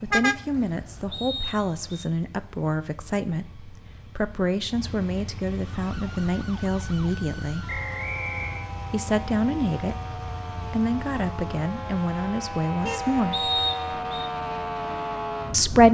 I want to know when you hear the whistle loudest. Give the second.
14 s.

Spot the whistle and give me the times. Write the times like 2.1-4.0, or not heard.
1.1-2.0, 7.7-8.7, 13.3-14.3.